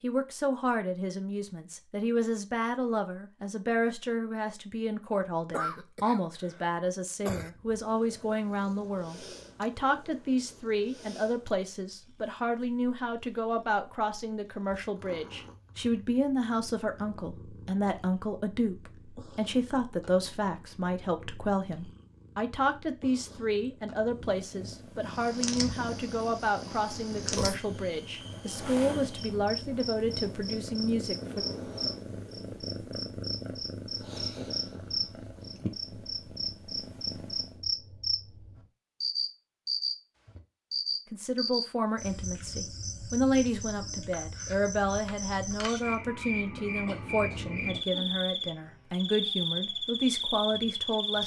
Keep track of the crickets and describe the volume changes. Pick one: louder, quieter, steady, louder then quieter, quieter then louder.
louder.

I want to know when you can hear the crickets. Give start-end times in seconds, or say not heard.
25.1-51.2.